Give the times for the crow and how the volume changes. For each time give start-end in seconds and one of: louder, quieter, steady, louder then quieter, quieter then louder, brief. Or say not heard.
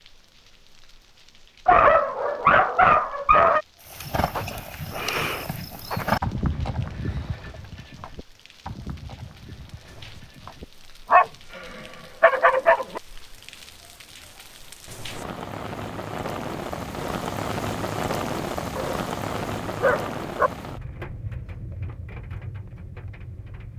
not heard.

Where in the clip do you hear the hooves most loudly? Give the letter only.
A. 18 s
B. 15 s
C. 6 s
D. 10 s
C.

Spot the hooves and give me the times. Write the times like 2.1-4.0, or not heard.
3.8-10.7.